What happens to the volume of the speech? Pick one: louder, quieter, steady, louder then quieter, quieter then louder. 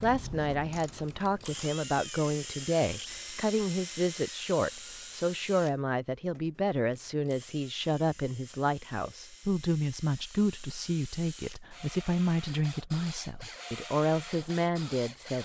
steady.